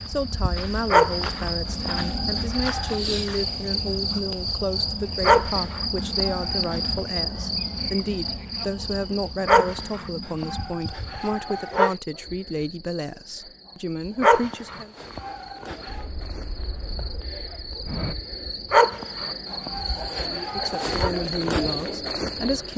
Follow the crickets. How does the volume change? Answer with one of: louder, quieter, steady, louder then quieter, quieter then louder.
quieter then louder.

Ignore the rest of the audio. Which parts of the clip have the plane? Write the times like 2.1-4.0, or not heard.
15.8-18.1.